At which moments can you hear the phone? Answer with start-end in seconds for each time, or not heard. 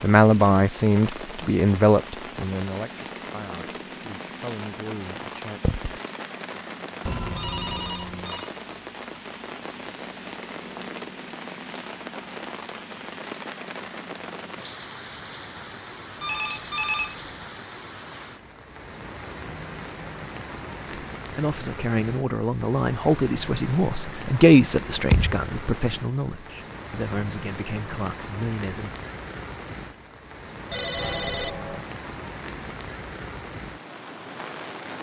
7.0-8.5, 16.2-17.3, 30.7-31.9.